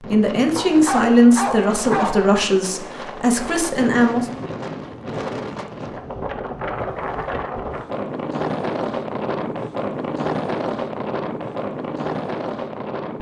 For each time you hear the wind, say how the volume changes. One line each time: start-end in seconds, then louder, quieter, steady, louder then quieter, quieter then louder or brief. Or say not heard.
0.0-13.1 louder.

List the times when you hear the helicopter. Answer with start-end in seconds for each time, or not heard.
not heard.